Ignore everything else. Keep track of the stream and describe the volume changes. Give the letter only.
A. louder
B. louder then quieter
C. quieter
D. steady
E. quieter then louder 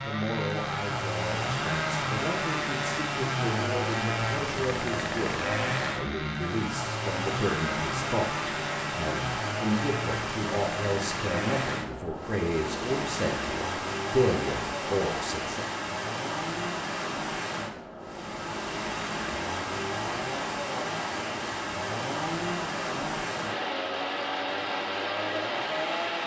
D.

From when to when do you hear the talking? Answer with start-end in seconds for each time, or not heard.
0.0-15.7.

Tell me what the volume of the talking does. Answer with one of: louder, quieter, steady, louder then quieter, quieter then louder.
louder.